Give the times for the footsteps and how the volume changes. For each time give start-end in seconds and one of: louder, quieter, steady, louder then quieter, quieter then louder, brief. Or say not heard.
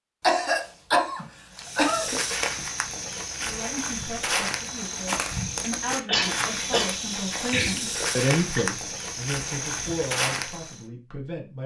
1.5-10.8 steady.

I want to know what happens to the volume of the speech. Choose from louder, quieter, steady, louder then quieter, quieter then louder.
louder then quieter.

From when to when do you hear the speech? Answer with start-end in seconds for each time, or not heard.
3.4-11.6.